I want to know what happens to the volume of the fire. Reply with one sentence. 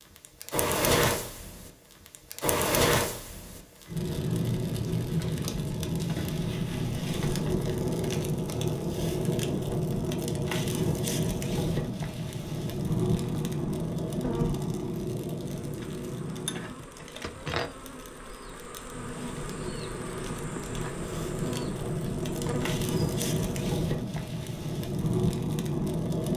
The loudness of the fire goes down, then up.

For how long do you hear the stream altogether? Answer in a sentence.
You can't hear the stream here.